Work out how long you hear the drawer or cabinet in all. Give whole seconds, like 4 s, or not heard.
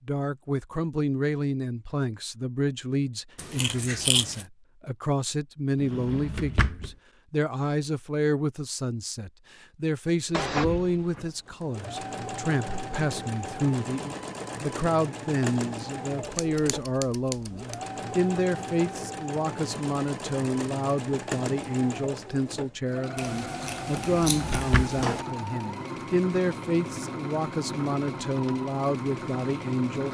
3 s.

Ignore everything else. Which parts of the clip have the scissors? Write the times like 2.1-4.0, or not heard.
3.4-4.5, 16.2-17.8, 23.1-25.2.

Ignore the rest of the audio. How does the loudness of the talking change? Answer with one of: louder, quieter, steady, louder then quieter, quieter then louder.
steady.